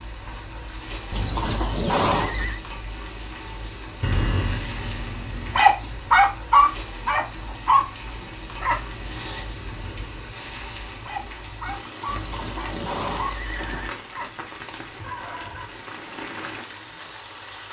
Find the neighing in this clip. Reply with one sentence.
You can hear the neighing from 1.1 to 2.6 s and from 12.1 to 13.9 s.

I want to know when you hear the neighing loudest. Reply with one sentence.
The loudest moment of the neighing is at 2 seconds.